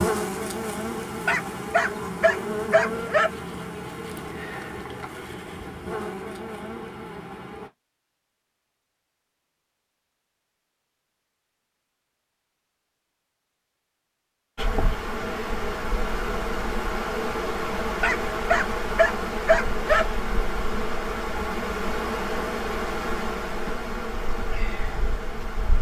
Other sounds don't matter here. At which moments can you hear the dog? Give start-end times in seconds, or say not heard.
1.2-3.3, 18.0-20.1.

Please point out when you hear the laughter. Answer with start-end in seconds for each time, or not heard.
not heard.